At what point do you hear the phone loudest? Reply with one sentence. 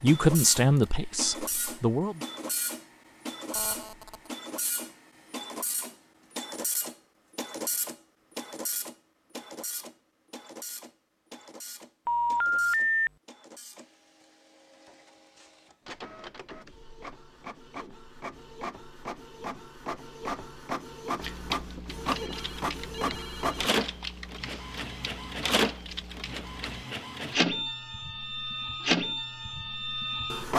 The volume of the phone peaks at 13 seconds.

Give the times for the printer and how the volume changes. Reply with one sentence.
You can hear the printer from 0.0 to 30.5 s, getting quieter then louder.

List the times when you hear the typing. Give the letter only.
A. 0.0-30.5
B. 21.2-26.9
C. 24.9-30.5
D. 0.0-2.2
B.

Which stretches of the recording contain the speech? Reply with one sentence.
You can hear the speech from 0.0 to 2.2 s.